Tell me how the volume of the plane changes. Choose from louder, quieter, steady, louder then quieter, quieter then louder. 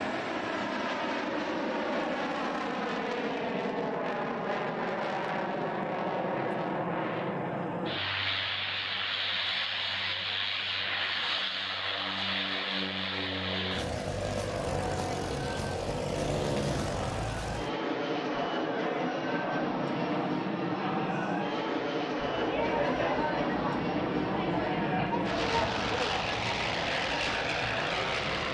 steady.